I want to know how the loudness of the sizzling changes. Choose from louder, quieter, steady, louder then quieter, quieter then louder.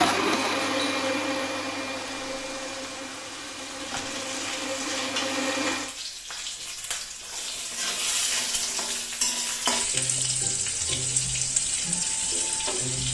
louder.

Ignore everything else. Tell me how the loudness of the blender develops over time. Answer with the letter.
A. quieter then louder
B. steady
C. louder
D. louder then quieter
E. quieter
A.